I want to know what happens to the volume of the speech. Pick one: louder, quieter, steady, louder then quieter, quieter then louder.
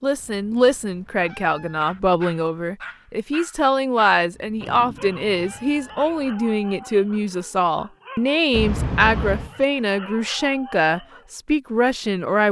steady.